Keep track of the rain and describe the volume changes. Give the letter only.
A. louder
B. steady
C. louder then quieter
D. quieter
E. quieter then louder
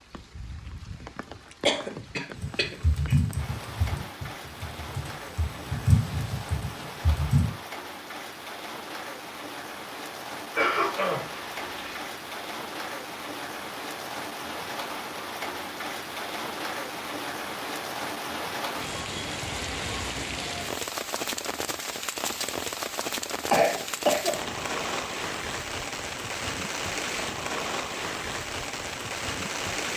A.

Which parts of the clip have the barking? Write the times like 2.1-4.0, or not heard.
not heard.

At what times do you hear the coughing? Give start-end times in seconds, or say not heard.
1.6-3.2, 10.6-12.0, 23.5-24.4.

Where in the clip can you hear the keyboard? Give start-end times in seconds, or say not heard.
2.4-7.5.